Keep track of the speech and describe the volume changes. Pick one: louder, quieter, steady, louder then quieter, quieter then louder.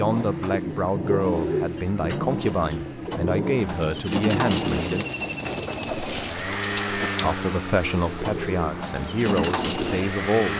steady.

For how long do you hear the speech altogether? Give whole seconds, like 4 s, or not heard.
8 s.